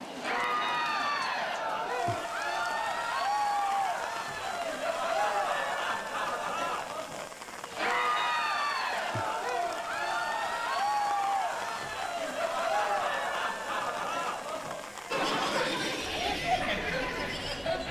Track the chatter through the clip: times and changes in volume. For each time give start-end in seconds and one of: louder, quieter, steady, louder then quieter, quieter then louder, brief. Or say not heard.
0.1-17.8 steady.